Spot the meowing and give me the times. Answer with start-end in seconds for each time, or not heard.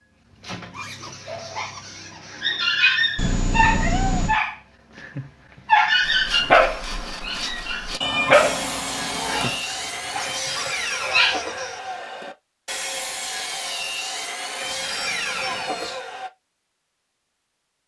3.1-4.4, 8.0-9.7, 14.6-16.0.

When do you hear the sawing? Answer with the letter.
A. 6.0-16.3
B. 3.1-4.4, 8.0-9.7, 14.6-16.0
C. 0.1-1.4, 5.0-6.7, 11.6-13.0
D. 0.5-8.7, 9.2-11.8
A.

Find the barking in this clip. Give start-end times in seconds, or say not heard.
0.5-8.7, 9.2-11.8.